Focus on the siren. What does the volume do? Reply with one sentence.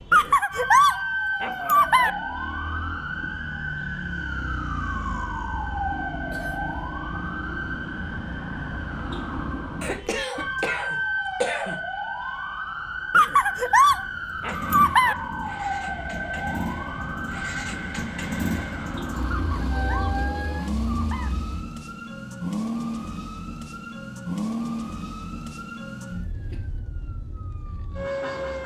The loudness of the siren stays about the same.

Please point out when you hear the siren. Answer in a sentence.
You can hear the siren from 0.0 to 28.6 s.